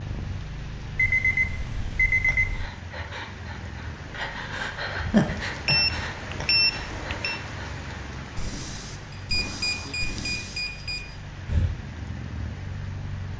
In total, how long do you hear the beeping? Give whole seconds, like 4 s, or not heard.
5 s.